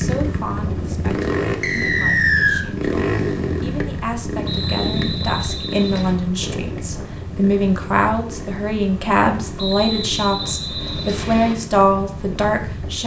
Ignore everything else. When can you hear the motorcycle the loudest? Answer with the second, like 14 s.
3 s.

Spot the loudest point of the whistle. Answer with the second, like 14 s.
2 s.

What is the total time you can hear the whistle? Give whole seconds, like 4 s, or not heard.
5 s.